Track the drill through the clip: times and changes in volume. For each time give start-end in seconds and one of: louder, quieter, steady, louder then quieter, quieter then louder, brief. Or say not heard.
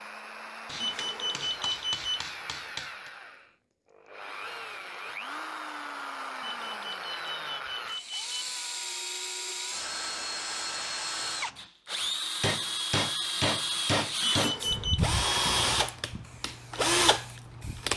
0.0-17.9 louder.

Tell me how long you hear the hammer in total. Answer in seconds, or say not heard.
5 s.